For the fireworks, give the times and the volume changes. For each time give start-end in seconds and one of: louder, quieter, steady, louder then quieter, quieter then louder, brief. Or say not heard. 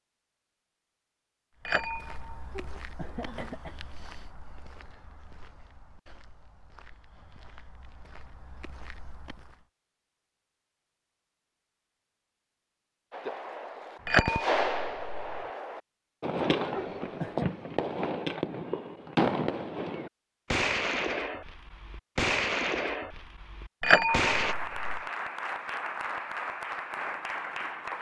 13.1-24.6 steady.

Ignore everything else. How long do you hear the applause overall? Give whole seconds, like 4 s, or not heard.
4 s.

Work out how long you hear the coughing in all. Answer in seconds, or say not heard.
2 s.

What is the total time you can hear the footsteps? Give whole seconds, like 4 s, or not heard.
8 s.